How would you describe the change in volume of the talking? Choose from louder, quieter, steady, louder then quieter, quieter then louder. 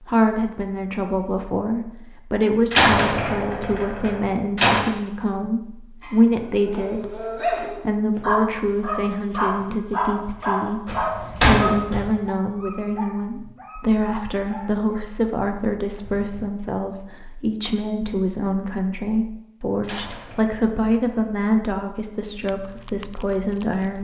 steady.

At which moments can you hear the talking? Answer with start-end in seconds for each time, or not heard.
0.0-23.9.